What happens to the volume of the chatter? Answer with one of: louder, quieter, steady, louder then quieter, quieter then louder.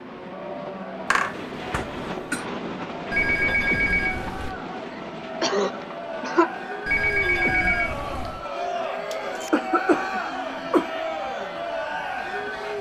louder.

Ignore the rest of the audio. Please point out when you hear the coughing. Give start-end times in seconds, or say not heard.
1.1-2.5, 4.9-6.5, 9.1-11.0.